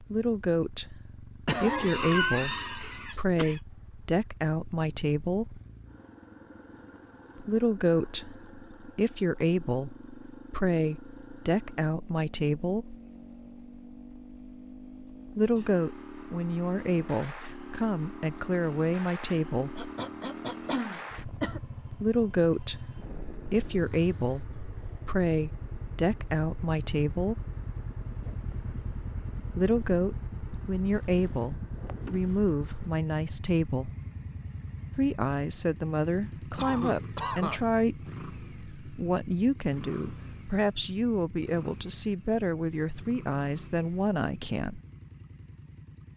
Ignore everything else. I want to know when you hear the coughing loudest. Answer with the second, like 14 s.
2 s.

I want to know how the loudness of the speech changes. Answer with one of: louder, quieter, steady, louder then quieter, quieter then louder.
steady.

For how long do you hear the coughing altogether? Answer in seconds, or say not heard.
5 s.